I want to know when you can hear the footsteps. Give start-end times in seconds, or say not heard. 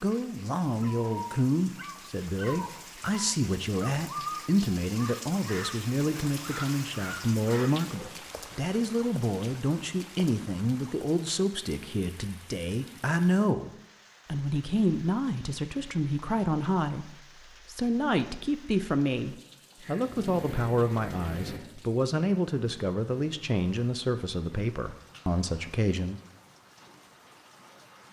not heard.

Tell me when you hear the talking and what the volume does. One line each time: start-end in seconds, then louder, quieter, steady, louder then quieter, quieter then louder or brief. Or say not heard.
0.0-26.2 steady.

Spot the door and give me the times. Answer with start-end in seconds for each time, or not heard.
not heard.